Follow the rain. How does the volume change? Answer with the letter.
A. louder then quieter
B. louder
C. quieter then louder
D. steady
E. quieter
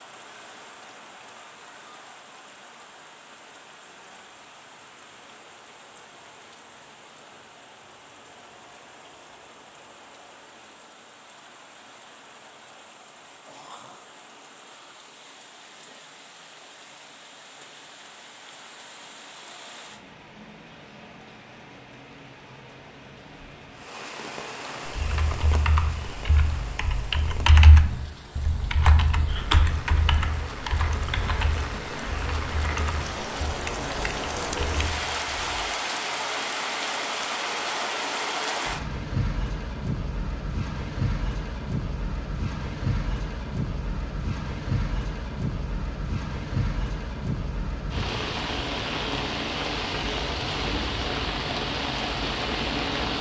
B.